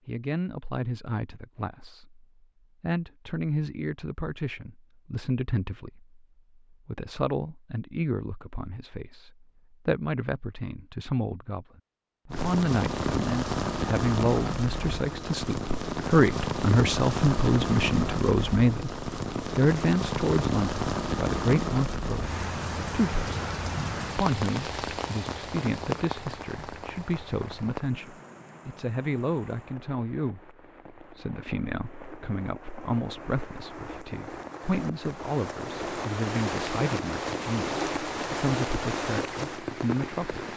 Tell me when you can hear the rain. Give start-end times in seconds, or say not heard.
12.3-40.5.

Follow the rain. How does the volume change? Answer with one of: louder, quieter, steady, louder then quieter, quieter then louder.
quieter then louder.